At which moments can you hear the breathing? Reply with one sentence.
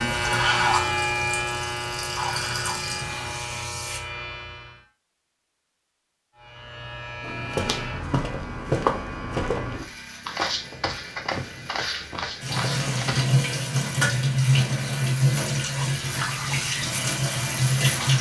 The breathing can't be heard in this clip.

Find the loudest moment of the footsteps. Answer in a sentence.
The loudest moment of the footsteps is at 9 seconds.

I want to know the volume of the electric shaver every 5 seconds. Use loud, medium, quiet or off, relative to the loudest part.
loud, medium, quiet, medium.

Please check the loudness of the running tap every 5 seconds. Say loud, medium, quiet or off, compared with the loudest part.
quiet, off, loud, loud.